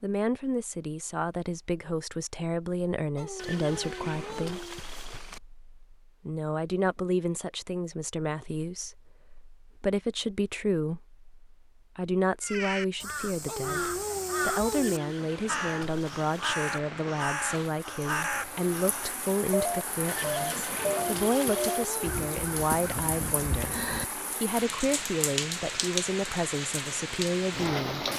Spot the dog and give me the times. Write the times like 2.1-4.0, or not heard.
3.1-4.8, 13.4-15.0, 20.8-22.2.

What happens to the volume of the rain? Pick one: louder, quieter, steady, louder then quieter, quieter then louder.
louder.